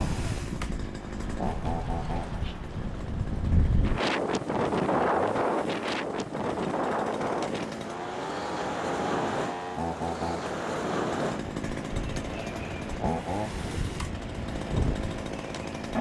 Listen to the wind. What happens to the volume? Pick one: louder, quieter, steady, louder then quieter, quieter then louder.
louder then quieter.